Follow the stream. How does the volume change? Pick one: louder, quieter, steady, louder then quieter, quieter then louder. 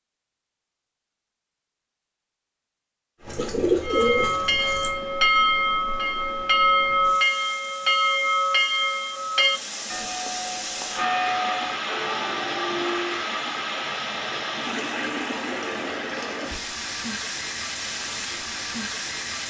louder.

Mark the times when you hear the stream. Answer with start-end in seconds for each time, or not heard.
3.1-19.4.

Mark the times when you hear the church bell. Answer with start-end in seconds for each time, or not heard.
3.8-13.2.